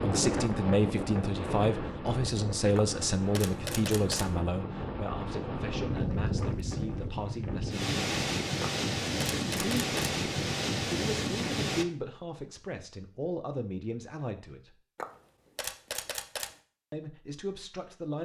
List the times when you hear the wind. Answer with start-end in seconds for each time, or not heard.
0.0-11.8.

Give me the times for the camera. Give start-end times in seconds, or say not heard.
2.8-4.3, 8.6-10.2, 14.9-16.6.